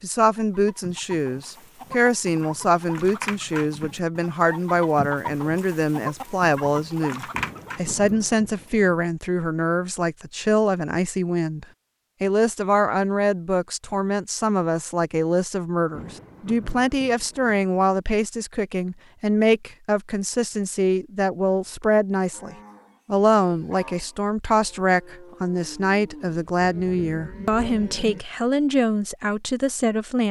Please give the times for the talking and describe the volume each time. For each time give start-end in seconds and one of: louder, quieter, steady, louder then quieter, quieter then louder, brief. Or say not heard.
0.0-30.2 steady.